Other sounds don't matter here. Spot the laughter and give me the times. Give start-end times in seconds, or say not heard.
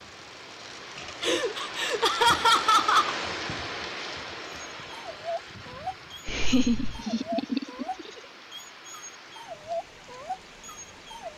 1.2-3.1, 6.2-8.2.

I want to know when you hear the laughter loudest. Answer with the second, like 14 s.
2 s.